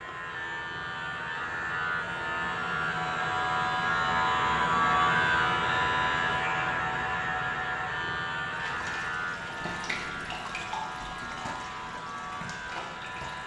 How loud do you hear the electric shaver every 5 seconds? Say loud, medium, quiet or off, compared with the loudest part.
loud, loud, medium.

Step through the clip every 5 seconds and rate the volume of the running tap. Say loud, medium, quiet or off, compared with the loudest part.
off, loud, loud.